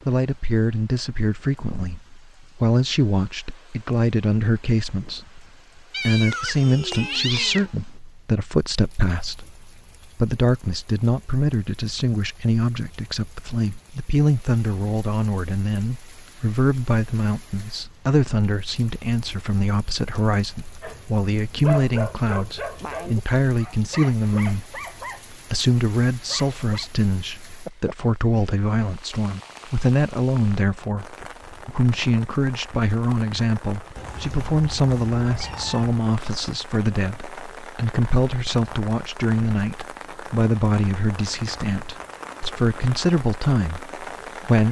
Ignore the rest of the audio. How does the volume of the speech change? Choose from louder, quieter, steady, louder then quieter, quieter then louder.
steady.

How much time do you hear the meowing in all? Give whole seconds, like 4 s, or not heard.
4 s.